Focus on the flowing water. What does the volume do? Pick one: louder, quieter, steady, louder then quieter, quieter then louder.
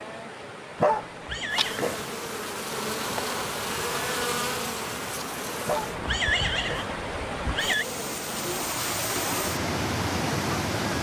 louder.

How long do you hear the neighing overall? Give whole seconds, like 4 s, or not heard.
3 s.